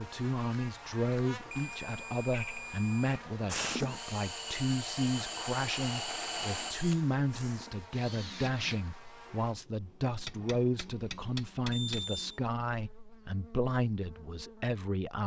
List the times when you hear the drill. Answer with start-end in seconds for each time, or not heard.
3.5-8.8.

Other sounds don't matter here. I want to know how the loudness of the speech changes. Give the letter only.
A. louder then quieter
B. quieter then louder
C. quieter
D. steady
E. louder
D.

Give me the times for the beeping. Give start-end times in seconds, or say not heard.
1.5-3.2, 11.7-12.4.